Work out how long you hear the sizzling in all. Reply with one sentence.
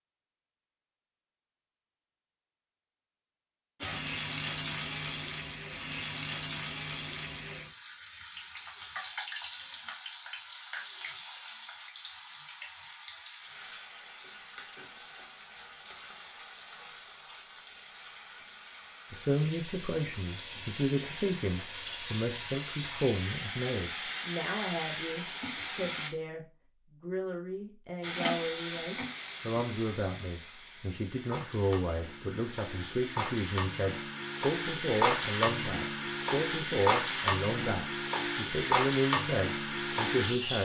The sizzling can be heard for 35 seconds in total.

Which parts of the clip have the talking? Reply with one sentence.
The talking can be heard from 19.1 to 40.6 s.